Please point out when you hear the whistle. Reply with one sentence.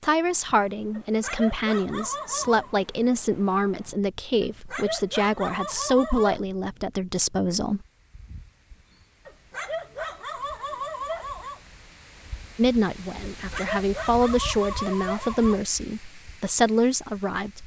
You can't hear the whistle here.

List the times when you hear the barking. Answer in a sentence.
You can hear the barking from 0.9 to 2.8 s, from 4.4 to 6.4 s, from 9.2 to 11.6 s and from 13.2 to 15.6 s.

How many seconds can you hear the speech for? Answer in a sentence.
The speech can be heard for 13 seconds in total.